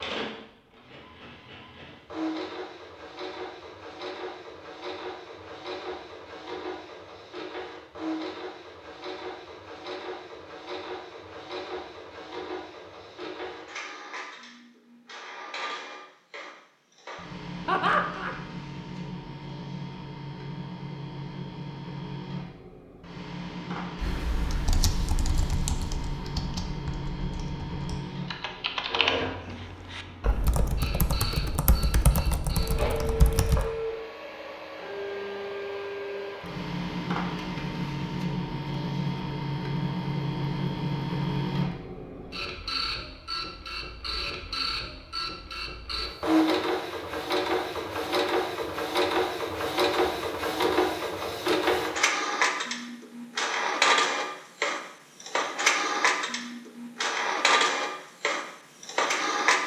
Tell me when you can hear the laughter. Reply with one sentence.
The laughter can be heard from 17.6 to 18.4 s.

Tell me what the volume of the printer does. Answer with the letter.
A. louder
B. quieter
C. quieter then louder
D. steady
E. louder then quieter
A.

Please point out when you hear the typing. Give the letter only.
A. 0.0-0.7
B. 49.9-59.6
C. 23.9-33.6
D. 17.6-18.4
C.